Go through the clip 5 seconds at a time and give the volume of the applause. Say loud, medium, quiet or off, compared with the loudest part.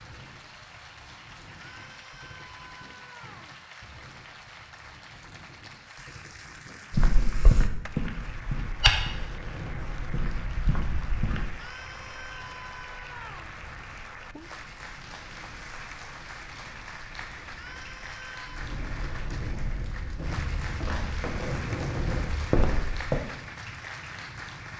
medium, medium, loud, loud, loud.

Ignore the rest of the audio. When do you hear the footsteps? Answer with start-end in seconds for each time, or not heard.
6.9-11.5, 19.5-23.2.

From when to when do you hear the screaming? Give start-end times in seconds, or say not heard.
1.6-3.5, 11.6-13.6, 17.6-18.6.